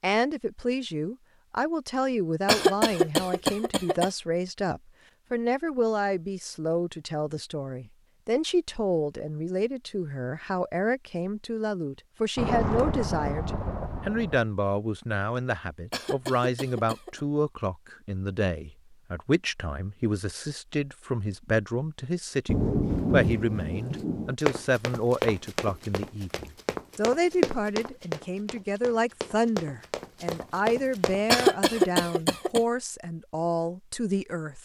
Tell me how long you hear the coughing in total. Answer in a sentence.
The coughing can be heard for 4 seconds in total.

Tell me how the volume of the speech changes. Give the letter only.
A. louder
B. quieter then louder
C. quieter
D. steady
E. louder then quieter
D.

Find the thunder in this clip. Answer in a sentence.
You can hear the thunder from 12.3 to 14.4 s and from 22.4 to 24.4 s.